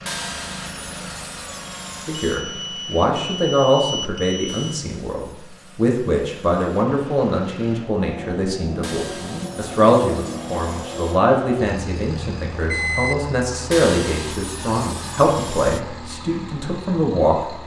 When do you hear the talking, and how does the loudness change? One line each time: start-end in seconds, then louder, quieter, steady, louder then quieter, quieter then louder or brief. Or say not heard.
2.0-17.6 steady.